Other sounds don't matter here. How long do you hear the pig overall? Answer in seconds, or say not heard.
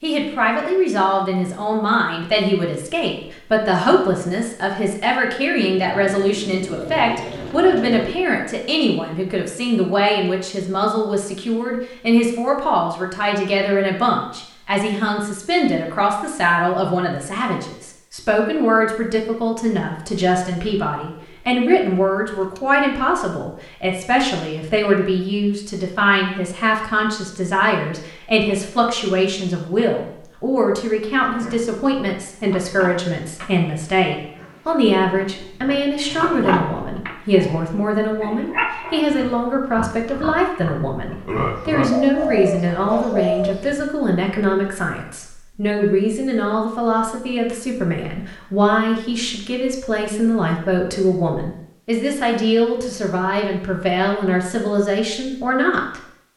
12 s.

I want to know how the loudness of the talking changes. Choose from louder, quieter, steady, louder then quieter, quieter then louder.
steady.